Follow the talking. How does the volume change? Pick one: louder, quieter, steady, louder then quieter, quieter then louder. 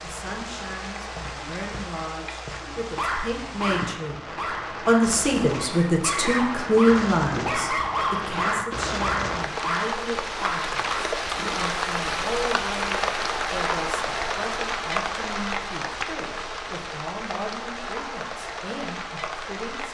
louder then quieter.